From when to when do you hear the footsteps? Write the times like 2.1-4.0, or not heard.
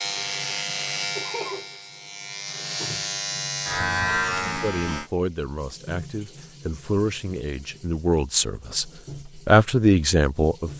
not heard.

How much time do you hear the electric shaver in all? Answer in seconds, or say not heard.
5 s.